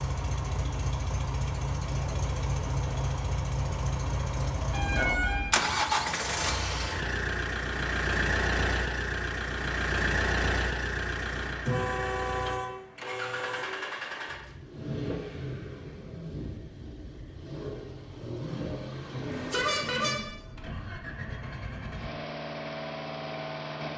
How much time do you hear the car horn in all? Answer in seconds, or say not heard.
4 s.